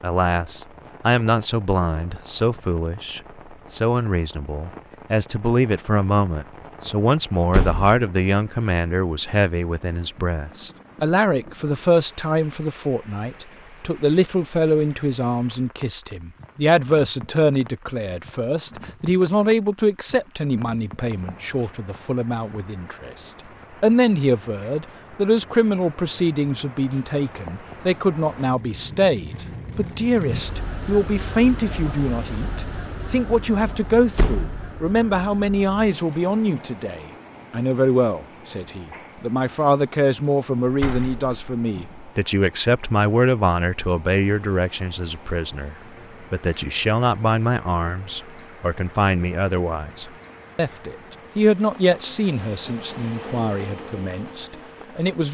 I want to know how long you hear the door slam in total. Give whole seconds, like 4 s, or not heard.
2 s.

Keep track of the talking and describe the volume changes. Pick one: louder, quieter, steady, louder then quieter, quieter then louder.
steady.